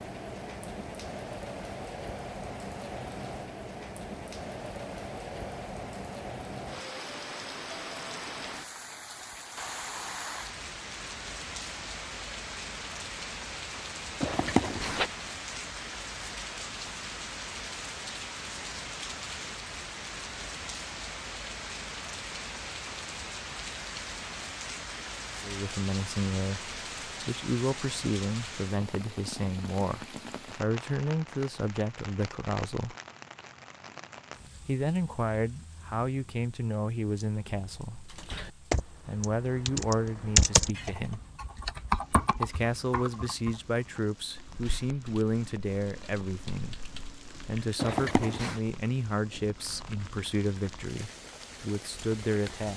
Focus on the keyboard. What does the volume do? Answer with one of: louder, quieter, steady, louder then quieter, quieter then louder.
quieter.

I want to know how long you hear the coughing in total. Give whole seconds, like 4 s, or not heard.
2 s.